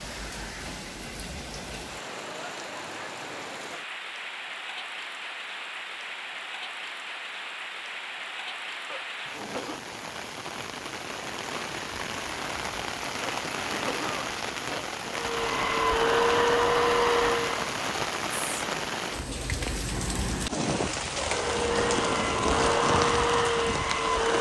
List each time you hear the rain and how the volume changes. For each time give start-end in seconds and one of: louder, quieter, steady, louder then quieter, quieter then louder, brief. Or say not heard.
0.0-24.3 louder.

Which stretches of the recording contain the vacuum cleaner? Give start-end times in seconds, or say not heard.
15.1-17.6, 21.2-24.3.